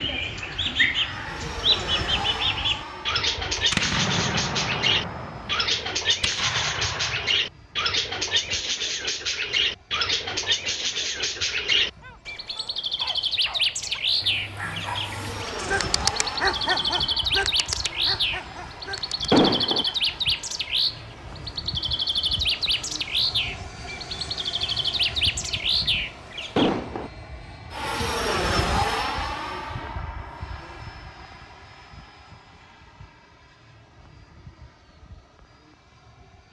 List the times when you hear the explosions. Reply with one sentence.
You can hear the explosions from 3.5 to 7.4 s, from 19.3 to 19.9 s and from 26.6 to 27.1 s.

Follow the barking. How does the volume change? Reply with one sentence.
The volume of the barking goes up, then down.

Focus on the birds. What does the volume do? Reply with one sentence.
The volume of the birds stays about the same.